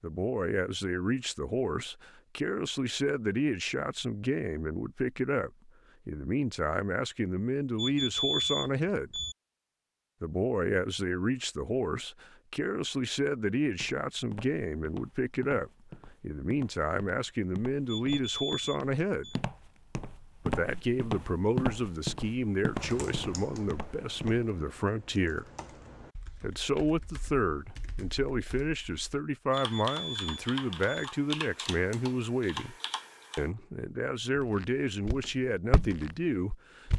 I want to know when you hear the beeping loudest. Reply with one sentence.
The loudest moment of the beeping is at 8 seconds.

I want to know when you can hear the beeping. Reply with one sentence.
You can hear the beeping from 7.8 to 9.3 s, from 17.9 to 19.4 s and from 29.5 to 31.1 s.